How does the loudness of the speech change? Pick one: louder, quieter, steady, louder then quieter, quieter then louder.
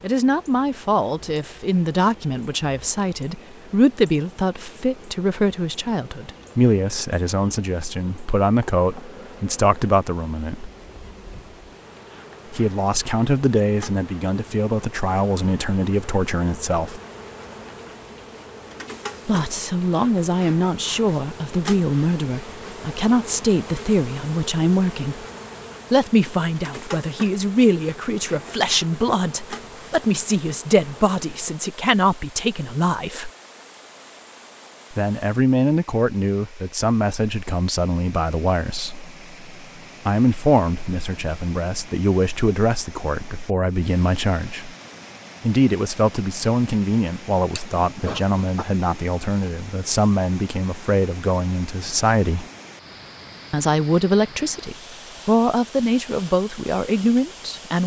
steady.